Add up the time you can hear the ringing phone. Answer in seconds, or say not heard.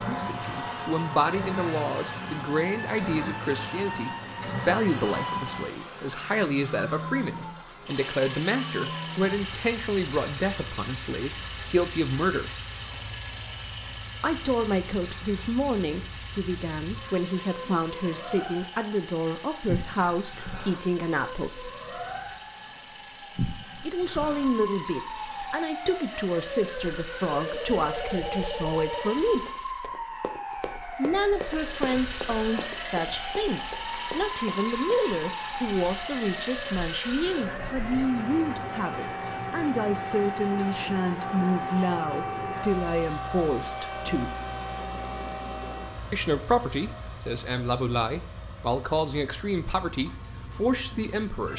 2 s.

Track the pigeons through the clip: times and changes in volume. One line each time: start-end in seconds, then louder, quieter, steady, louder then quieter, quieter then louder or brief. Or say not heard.
not heard.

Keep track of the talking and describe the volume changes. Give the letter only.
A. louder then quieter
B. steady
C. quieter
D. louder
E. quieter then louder
B.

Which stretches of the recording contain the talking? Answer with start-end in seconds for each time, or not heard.
0.0-12.5, 14.2-21.7, 23.8-29.4, 30.9-44.4, 46.1-51.5.